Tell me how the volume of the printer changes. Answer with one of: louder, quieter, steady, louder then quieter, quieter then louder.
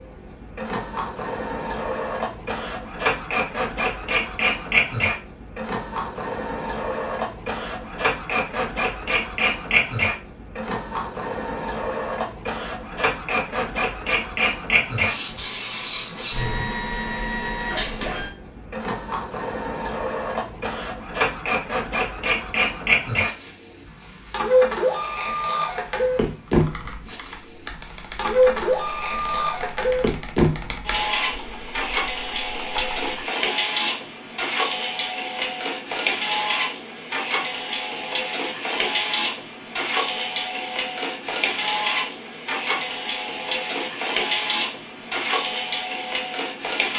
steady.